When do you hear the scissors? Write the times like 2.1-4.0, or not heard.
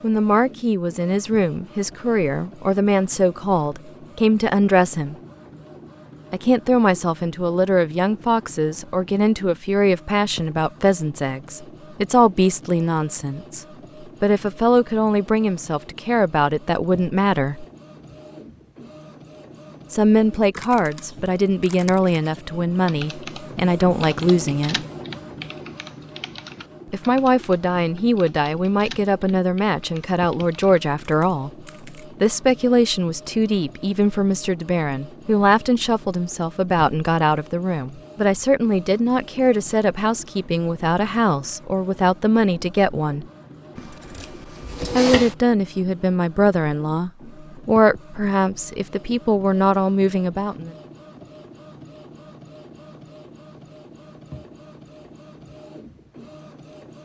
43.8-45.4.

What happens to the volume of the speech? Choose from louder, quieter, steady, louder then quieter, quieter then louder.
steady.